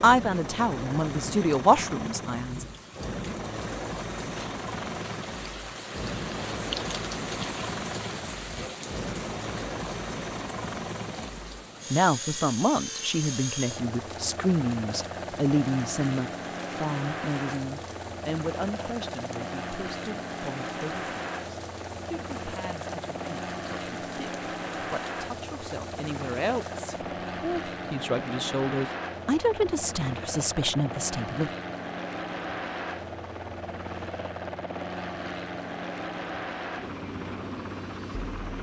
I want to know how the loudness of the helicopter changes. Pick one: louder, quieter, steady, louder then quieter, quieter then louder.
steady.